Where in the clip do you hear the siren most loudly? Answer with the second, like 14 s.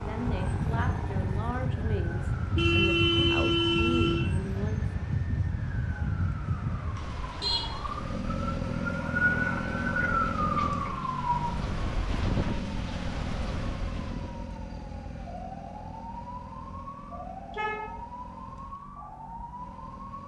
10 s.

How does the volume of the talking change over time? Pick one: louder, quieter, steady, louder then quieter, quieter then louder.
steady.